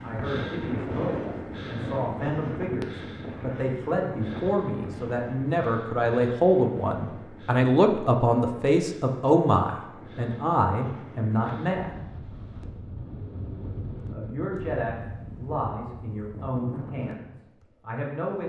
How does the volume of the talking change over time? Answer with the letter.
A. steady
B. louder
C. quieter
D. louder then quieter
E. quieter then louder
D.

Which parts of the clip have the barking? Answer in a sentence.
You can't hear the barking here.